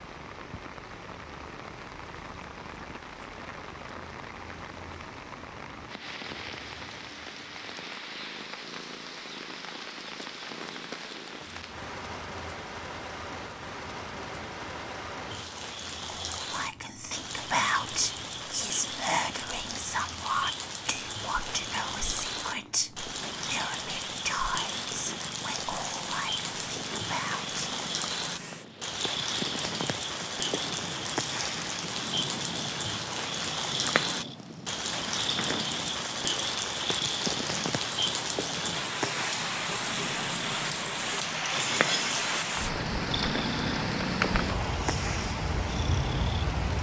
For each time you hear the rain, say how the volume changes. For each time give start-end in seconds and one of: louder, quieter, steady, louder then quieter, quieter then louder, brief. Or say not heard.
0.0-46.7 louder.